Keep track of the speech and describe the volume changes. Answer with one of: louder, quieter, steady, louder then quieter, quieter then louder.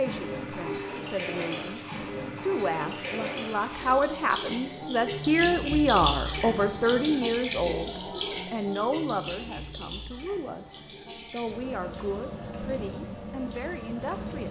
louder then quieter.